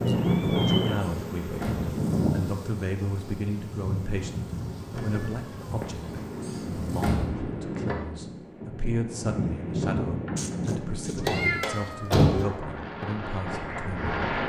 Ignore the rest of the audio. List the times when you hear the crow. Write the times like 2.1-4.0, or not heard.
not heard.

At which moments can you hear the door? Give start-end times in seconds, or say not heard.
1.0-2.0, 6.4-7.5, 11.2-12.3.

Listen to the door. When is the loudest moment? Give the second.
12 s.